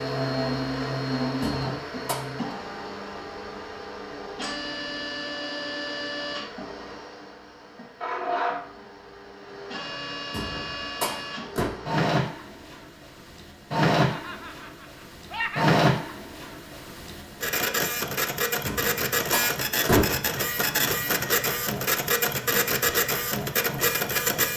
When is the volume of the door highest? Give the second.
20 s.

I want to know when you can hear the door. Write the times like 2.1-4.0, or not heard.
1.4-2.1, 10.3-11.7, 18.6-20.4.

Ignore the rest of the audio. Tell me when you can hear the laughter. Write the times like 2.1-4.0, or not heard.
13.9-15.7.